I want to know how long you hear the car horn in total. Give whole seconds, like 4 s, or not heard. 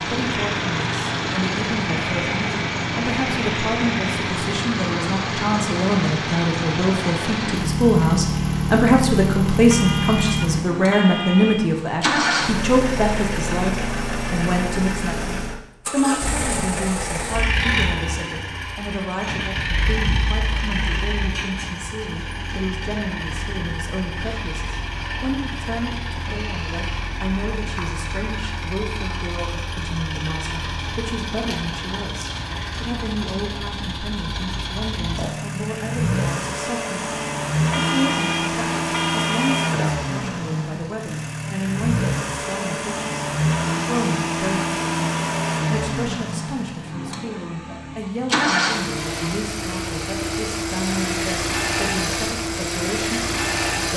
4 s.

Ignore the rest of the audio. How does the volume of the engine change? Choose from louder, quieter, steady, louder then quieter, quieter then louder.
quieter then louder.